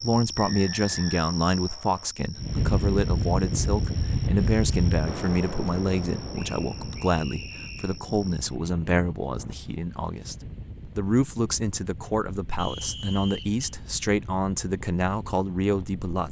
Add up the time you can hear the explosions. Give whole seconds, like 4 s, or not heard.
2 s.